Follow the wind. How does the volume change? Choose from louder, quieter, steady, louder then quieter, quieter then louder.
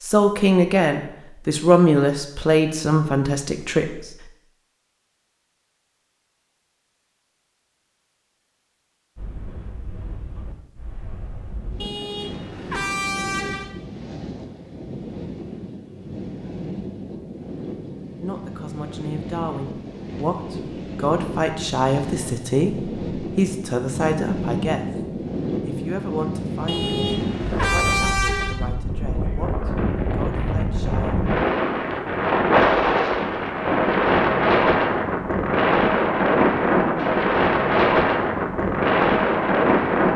louder.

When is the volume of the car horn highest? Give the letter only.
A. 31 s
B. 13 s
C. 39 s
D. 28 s
D.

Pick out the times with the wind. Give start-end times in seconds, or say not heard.
9.2-40.1.